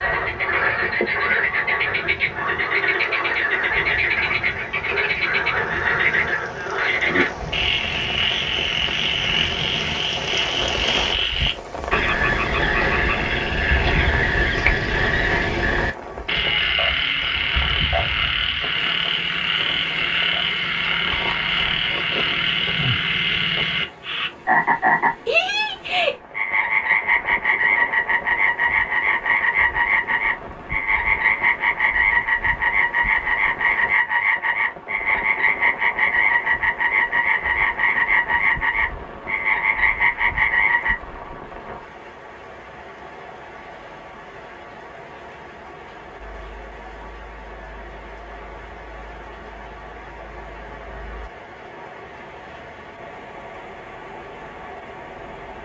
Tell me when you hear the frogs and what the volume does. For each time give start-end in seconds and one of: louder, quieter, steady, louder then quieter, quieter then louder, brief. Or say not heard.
0.0-41.0 steady.